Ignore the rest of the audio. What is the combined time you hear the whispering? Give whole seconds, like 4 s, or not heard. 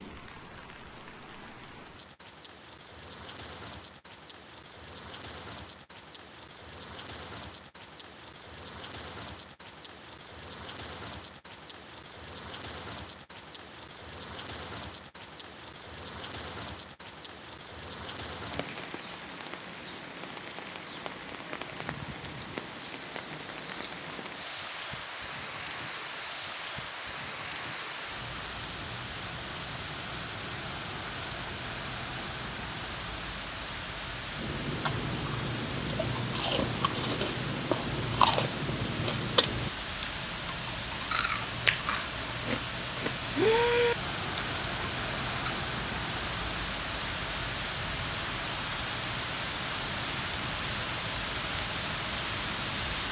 not heard.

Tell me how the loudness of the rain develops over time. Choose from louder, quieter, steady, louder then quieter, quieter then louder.
louder.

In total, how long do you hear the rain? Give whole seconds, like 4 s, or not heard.
53 s.